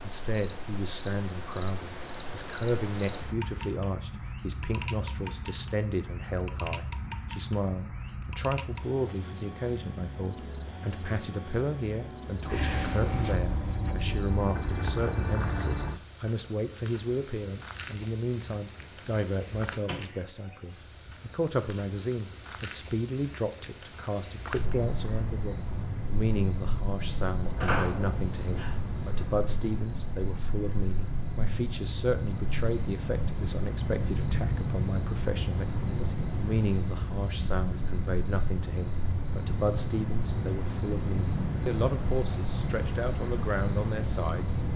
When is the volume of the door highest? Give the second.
28 s.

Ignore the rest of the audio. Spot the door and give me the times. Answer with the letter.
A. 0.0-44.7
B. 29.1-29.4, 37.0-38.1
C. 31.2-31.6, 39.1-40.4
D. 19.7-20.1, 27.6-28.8
D.